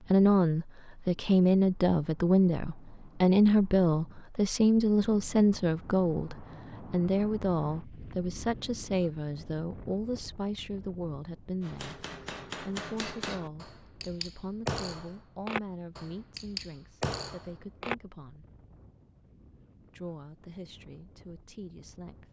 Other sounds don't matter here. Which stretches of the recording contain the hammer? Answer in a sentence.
You can hear the hammer from 11.6 to 17.9 s.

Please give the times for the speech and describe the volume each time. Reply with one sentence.
The speech can be heard from 0.1 to 18.4 s, getting quieter; and briefly from 19.9 to 22.2 s.